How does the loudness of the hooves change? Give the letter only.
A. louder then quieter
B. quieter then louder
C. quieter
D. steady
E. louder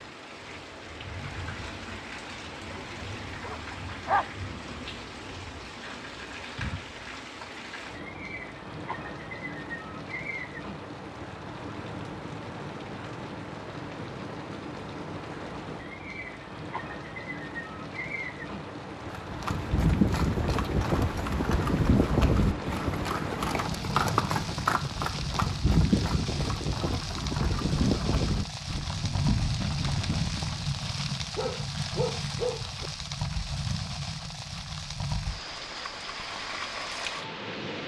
C.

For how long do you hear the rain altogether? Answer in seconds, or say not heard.
38 s.